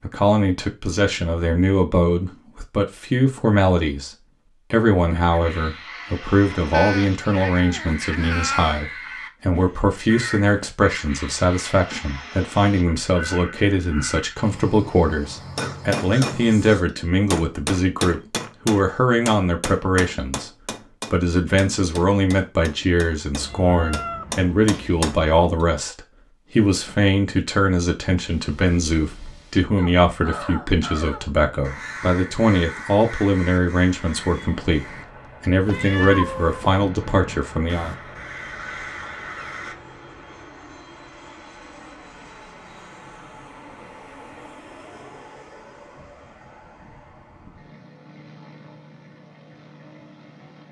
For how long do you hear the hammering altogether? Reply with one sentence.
The hammering can be heard for 9 seconds in total.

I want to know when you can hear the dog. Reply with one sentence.
You can't hear the dog here.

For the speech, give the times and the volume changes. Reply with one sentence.
The speech can be heard from 0.0 to 37.9 s, at a steady volume.